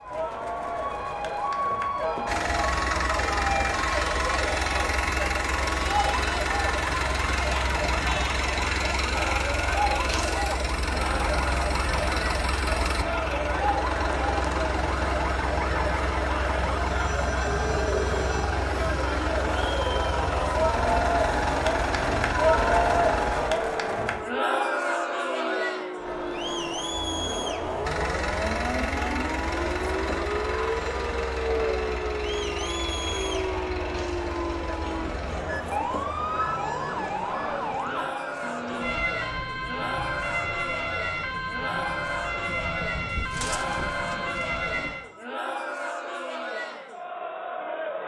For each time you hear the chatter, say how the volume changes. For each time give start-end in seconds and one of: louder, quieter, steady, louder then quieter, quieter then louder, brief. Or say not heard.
0.0-48.0 louder then quieter.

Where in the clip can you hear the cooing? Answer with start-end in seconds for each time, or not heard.
43.0-44.9.